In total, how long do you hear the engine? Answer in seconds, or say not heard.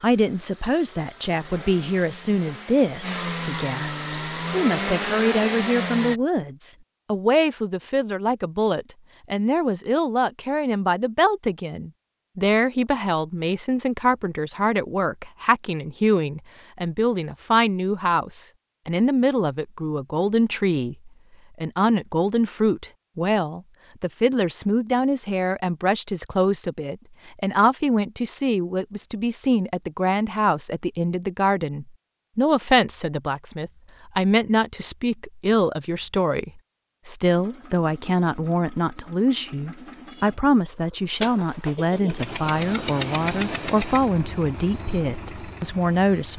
15 s.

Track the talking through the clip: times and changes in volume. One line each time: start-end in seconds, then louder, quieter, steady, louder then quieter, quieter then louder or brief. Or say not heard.
0.0-46.3 steady.